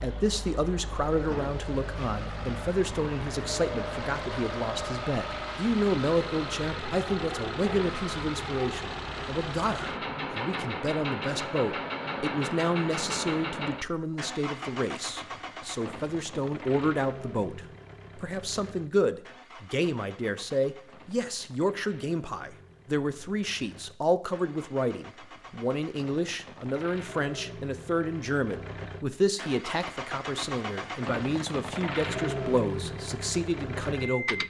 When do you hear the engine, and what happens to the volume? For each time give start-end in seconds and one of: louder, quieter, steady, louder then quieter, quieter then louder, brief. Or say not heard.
0.0-34.4 quieter then louder.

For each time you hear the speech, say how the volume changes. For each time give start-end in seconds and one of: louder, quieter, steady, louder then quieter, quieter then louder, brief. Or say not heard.
0.0-34.4 steady.